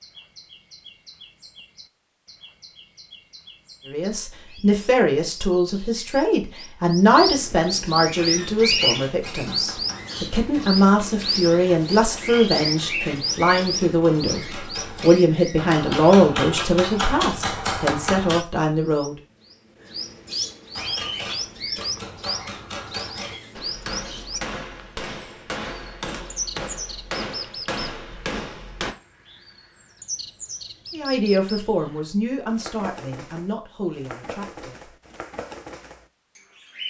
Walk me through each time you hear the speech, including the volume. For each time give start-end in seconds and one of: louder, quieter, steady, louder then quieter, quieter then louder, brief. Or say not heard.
3.9-19.1 steady
30.9-34.9 quieter.